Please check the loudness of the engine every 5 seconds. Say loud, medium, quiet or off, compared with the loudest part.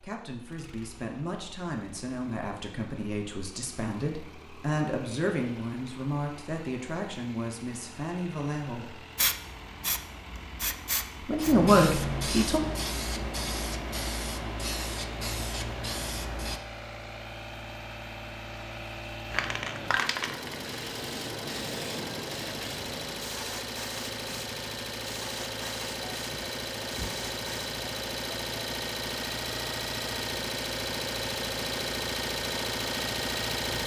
quiet, quiet, quiet, medium, medium, loud, loud.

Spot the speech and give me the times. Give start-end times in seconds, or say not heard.
0.0-9.0, 11.2-12.6.